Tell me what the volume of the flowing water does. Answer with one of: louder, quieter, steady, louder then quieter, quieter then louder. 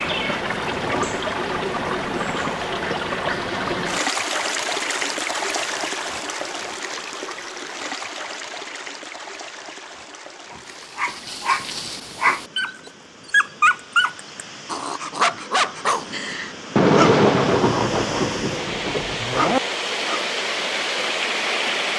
quieter then louder.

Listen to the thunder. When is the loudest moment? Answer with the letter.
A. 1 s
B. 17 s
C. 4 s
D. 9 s
B.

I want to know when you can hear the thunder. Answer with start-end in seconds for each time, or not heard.
16.8-19.6.